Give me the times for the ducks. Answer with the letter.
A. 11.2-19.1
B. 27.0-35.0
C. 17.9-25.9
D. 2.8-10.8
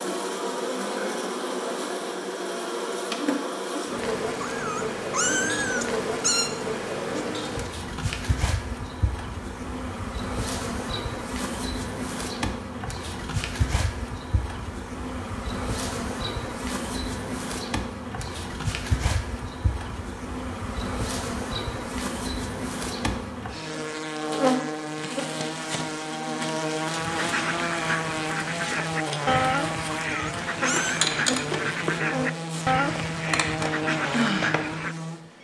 B.